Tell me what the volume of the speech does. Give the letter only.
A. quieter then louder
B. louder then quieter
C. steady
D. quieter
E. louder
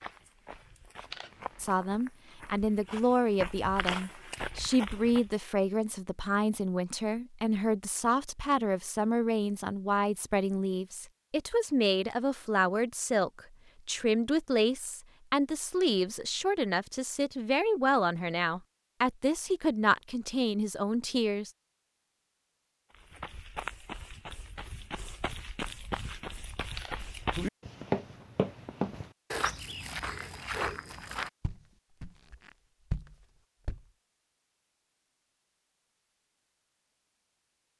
C.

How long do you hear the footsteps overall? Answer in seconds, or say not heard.
16 s.